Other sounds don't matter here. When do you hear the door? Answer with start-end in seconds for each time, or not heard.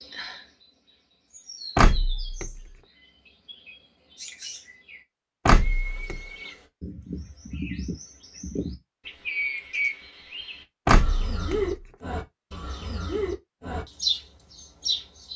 1.8-2.6, 5.5-6.2, 10.8-11.7.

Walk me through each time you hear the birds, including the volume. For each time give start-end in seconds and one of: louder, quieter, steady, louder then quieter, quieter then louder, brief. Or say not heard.
0.0-15.3 louder.